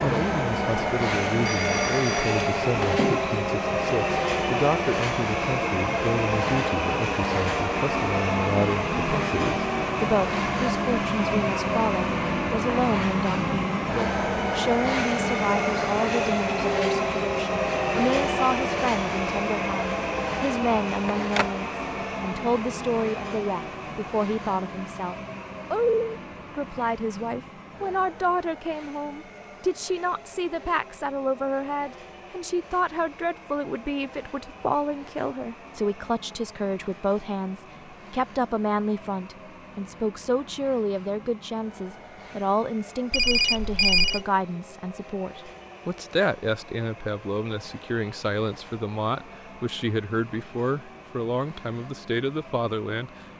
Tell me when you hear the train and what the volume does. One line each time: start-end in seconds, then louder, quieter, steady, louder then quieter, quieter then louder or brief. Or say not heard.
0.0-53.3 quieter.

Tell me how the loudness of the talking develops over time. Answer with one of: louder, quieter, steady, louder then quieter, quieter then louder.
steady.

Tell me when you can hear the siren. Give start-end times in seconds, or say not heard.
not heard.